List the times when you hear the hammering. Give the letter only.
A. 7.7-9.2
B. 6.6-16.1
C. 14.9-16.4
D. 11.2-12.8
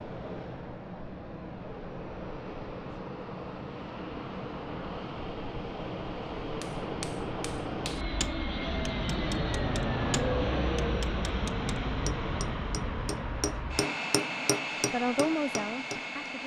B.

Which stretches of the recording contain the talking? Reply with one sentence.
The talking can be heard from 14.9 to 16.4 s.